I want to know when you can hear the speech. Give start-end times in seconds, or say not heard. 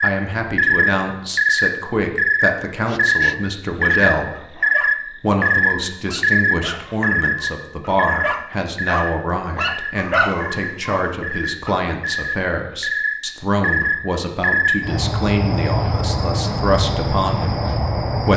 0.0-4.6, 5.2-18.3.